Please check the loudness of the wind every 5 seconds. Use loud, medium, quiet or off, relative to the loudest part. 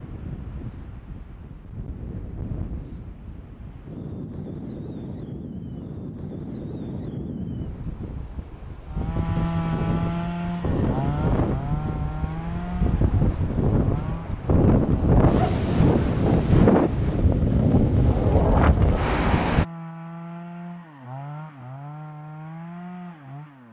quiet, quiet, medium, loud, off.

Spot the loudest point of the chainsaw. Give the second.
10 s.